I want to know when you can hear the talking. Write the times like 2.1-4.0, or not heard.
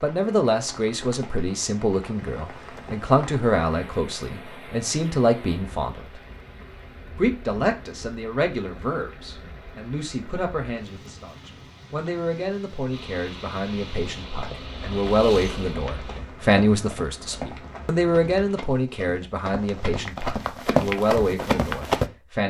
0.0-6.2, 7.2-22.4.